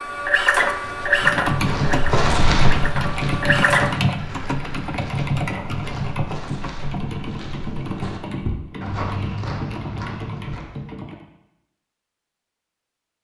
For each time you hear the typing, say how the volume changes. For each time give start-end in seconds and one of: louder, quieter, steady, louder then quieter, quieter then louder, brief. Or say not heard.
1.1-11.2 quieter.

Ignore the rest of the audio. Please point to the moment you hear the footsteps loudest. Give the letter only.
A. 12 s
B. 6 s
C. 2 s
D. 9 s
C.